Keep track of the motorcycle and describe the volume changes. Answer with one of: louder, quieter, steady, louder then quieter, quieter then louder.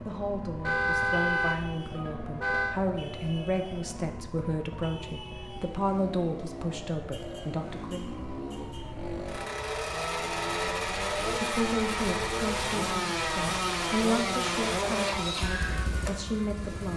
louder.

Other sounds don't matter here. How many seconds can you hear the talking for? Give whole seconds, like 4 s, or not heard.
14 s.